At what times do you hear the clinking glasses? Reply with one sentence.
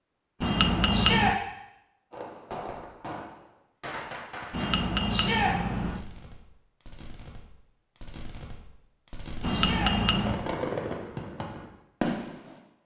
The clinking glasses can be heard from 0.4 to 1.4 s, from 4.5 to 6.0 s and from 9.4 to 10.4 s.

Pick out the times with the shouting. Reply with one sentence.
You can hear the shouting from 0.9 to 1.4 s, from 5.1 to 5.5 s and from 9.5 to 9.9 s.